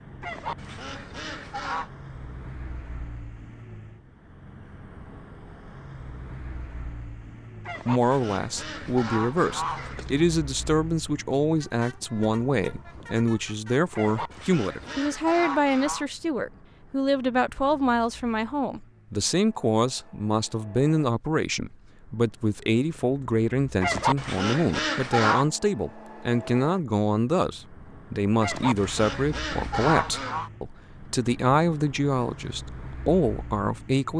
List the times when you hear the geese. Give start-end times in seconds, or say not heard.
0.2-1.9, 7.7-10.2, 13.9-16.1, 23.8-25.4, 28.4-30.5.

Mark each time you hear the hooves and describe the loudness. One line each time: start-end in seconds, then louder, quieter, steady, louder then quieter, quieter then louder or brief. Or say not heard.
not heard.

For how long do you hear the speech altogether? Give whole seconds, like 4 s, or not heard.
26 s.